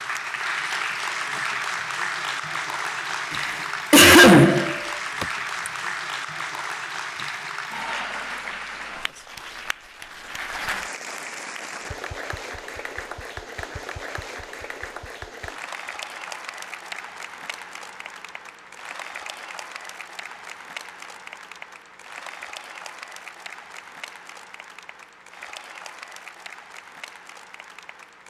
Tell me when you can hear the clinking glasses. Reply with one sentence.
The clinking glasses can't be heard in this clip.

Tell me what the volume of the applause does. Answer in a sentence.
The loudness of the applause goes down.